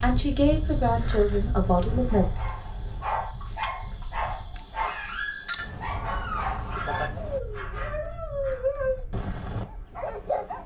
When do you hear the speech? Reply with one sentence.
You can hear the speech from 0.0 to 2.2 s.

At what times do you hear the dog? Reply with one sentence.
The dog can be heard from 1.9 to 10.6 s.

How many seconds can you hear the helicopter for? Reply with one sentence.
The helicopter can't be heard in this clip.